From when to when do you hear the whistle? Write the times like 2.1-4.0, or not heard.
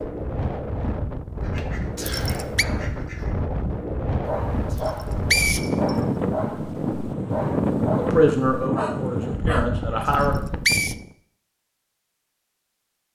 1.9-2.6, 4.8-6.0, 10.2-10.9.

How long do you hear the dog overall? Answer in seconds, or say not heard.
6 s.